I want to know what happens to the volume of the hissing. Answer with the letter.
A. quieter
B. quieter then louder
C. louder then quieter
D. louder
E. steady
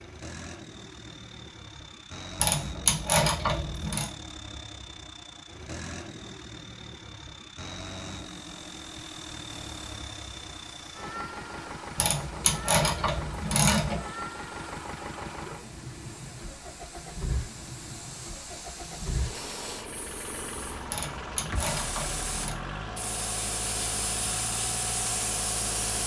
D.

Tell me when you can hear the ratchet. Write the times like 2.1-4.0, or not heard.
2.4-4.1, 11.9-14.0, 20.9-22.6.